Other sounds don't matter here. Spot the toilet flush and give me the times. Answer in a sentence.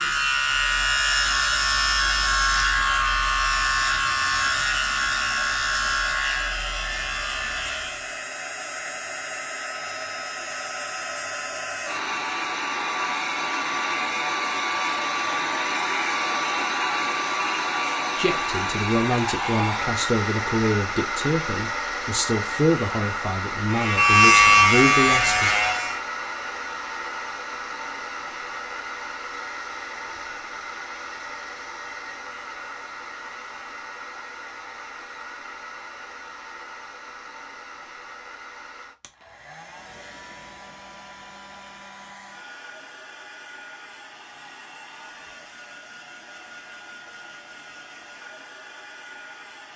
You can't hear the toilet flush here.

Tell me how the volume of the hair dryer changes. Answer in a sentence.
The loudness of the hair dryer goes up, then down.